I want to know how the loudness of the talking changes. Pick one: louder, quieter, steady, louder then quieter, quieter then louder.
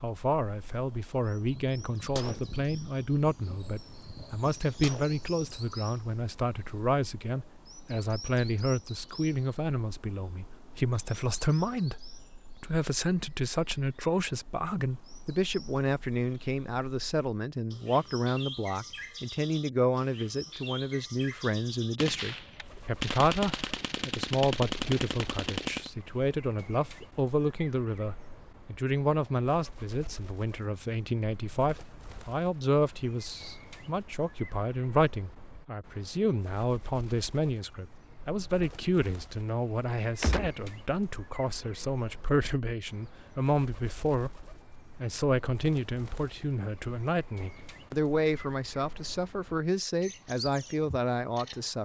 steady.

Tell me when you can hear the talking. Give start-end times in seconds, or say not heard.
0.0-51.7.